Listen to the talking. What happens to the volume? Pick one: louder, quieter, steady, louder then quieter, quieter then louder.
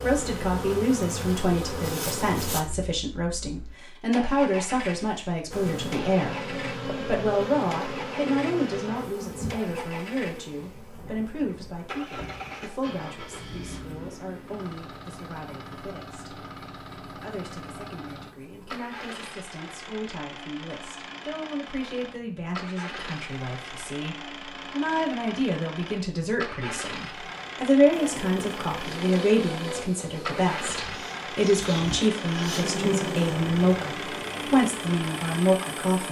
quieter then louder.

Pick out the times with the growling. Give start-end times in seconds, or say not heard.
not heard.